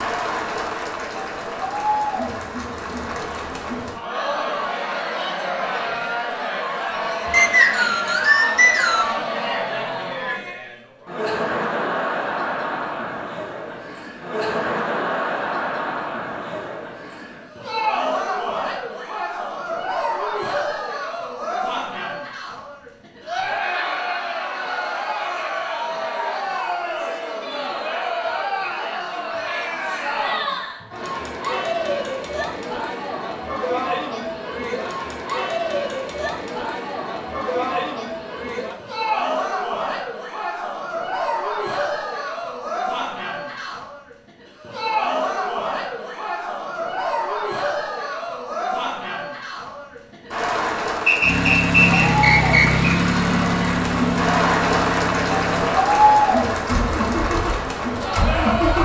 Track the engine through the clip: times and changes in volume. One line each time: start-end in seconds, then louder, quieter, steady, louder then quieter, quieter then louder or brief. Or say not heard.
51.2-58.8 quieter.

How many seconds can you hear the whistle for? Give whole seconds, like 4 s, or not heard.
4 s.